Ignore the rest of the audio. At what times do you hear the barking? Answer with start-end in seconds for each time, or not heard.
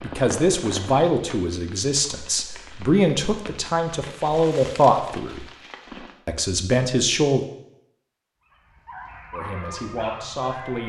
8.4-10.8.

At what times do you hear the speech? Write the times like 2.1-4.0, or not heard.
0.0-5.5, 6.2-7.4, 9.3-10.8.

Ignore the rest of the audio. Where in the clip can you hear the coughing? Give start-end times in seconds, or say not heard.
not heard.